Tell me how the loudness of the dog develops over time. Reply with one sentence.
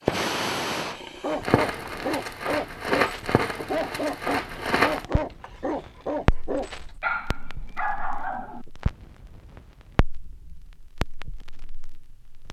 The loudness of the dog stays about the same.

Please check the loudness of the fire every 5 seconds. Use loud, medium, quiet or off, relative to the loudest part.
loud, medium, quiet.